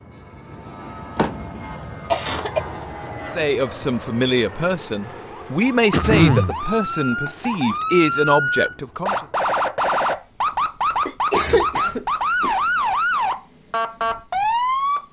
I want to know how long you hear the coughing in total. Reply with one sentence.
The coughing can be heard for 3 seconds in total.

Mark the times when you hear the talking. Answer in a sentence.
The talking can be heard from 3.2 to 9.2 s.